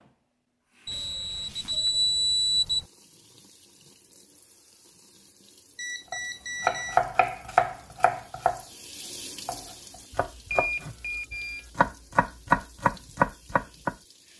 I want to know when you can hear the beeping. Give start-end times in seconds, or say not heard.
0.8-2.9, 5.8-7.0, 10.5-11.7.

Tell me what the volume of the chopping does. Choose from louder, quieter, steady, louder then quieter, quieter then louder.
quieter then louder.